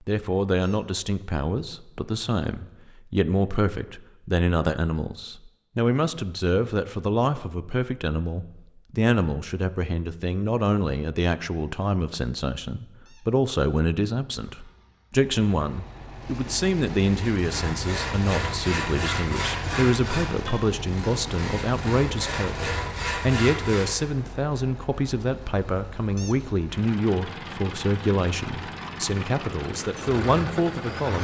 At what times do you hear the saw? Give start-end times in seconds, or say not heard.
17.1-24.1.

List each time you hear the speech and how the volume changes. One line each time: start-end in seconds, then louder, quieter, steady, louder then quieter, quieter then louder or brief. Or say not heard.
0.1-31.1 steady.